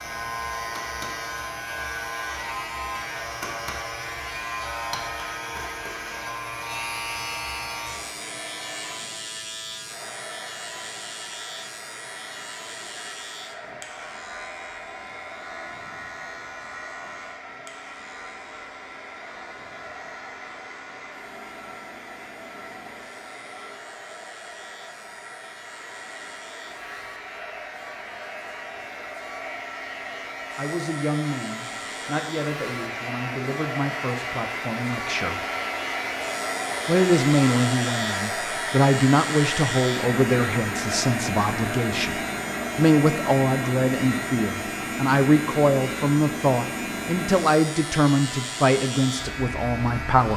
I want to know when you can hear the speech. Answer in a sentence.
The speech can be heard from 30.6 to 35.5 s and from 36.9 to 50.3 s.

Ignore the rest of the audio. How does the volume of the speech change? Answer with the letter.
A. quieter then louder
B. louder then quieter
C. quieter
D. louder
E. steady
D.